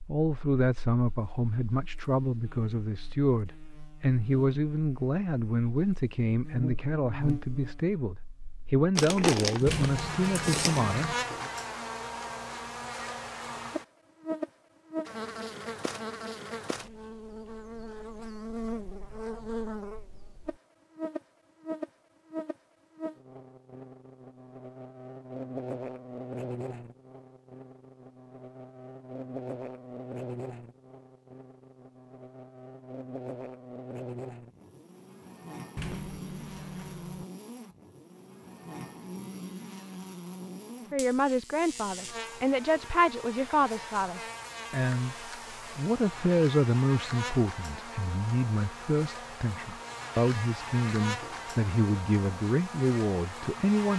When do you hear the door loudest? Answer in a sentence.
The loudest moment of the door is at 10 seconds.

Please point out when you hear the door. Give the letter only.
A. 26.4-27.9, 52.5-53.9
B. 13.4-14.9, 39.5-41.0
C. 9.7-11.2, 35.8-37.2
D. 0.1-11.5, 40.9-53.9
C.